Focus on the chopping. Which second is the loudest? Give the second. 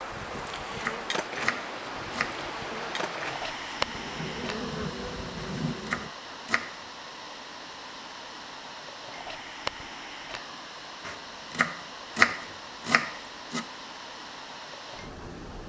12 s.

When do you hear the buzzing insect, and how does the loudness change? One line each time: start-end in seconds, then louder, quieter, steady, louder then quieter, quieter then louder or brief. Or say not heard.
0.0-6.1 quieter then louder.